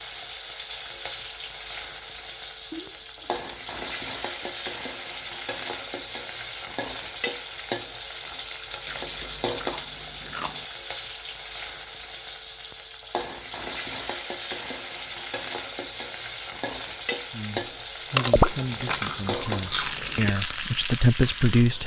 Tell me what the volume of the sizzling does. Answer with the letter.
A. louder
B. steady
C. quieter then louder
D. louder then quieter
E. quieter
B.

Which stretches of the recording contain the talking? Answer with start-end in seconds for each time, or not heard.
17.3-21.8.